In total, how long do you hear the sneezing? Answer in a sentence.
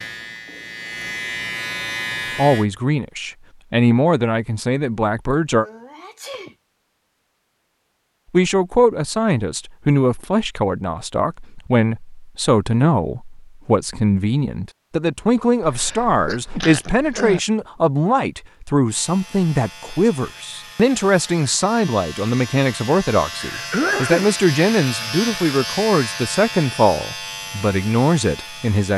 The sneezing can be heard for 4 seconds in total.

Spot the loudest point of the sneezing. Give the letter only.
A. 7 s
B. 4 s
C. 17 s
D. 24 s
D.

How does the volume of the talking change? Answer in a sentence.
The volume of the talking stays about the same.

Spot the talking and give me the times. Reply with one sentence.
You can hear the talking from 2.4 to 5.7 s and from 8.3 to 28.9 s.